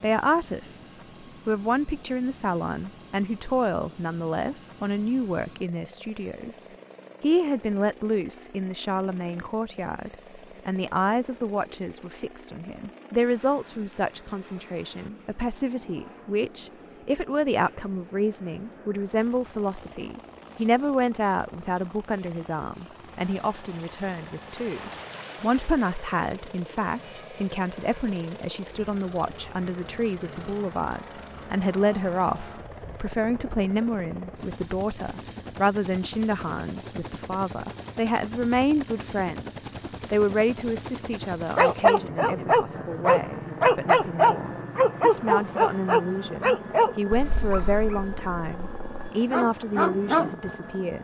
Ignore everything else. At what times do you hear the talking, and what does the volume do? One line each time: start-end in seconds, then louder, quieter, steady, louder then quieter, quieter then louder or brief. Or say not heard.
0.0-50.9 steady.